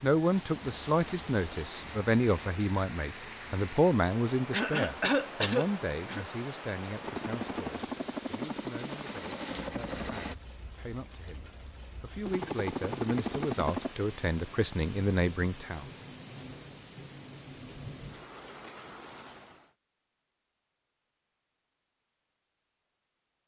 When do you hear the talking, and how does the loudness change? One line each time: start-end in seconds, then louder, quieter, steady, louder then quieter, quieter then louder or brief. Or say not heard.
0.0-15.8 quieter then louder.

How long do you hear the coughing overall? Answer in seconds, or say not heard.
2 s.